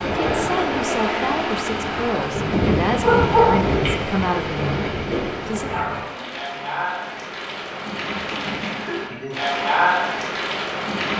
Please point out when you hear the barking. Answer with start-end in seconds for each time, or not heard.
3.0-3.8, 5.7-6.6.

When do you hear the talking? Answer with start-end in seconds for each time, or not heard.
0.2-5.7.